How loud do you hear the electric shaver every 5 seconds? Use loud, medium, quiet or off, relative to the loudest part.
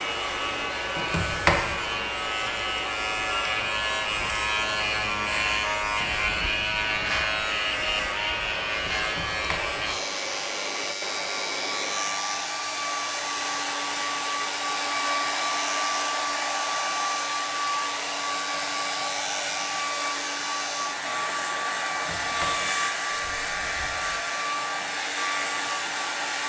loud, loud, medium, medium, medium, medium.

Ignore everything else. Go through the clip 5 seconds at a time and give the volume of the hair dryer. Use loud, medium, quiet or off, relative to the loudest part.
medium, medium, loud, loud, loud, loud.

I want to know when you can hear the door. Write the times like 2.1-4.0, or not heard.
0.9-1.7, 8.9-9.7, 21.9-24.1.